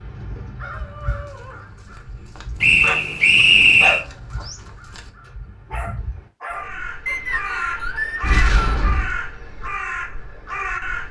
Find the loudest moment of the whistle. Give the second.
4 s.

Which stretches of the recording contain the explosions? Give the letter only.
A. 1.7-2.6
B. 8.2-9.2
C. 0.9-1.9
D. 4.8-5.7
B.